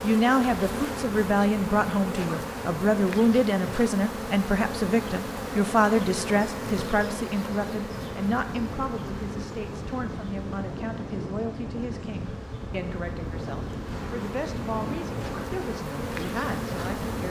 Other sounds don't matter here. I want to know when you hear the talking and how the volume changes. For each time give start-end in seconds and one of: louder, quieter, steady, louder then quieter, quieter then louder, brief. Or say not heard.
0.0-17.2 quieter.